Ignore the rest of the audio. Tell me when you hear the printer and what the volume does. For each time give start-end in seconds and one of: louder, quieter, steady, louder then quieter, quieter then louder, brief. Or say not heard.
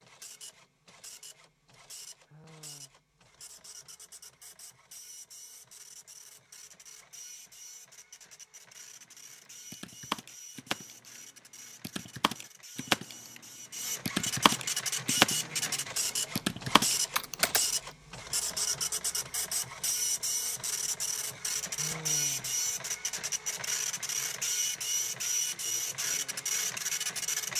0.0-27.5 louder.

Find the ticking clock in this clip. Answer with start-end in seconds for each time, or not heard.
not heard.